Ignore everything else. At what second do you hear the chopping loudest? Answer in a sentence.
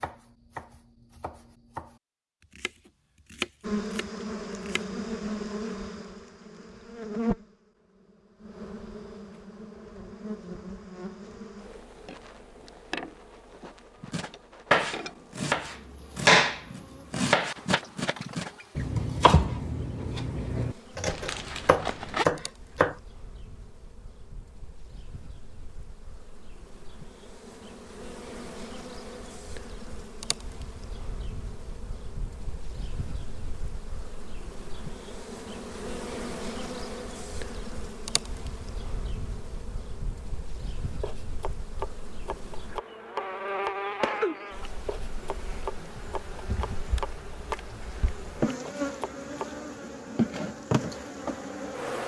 The volume of the chopping peaks at 16 seconds.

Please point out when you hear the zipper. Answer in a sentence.
You can hear the zipper from 21.1 to 22.2 s.